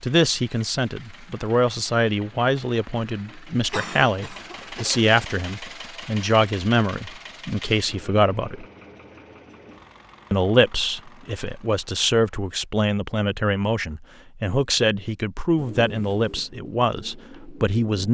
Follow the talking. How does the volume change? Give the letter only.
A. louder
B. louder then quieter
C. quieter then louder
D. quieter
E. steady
E.